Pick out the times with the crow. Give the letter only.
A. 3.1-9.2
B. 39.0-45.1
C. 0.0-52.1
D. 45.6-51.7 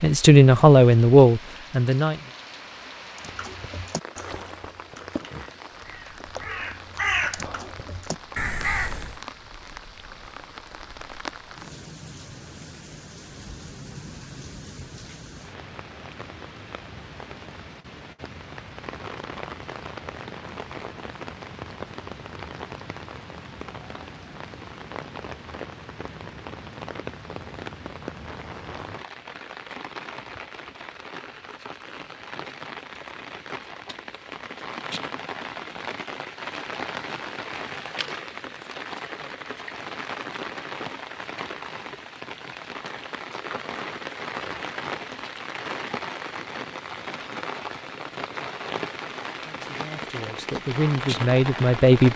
A.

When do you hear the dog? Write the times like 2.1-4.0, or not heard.
not heard.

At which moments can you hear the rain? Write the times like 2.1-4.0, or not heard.
0.0-52.1.